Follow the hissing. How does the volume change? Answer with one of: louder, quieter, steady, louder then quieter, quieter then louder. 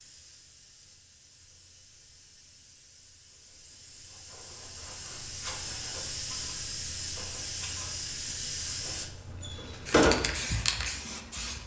louder.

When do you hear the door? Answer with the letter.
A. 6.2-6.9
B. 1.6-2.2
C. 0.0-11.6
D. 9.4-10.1
D.